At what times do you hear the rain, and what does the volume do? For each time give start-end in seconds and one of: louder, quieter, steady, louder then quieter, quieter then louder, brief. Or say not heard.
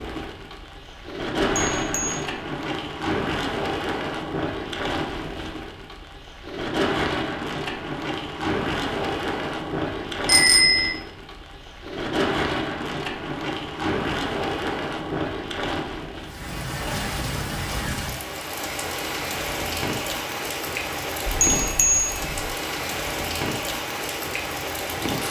0.0-25.2 steady.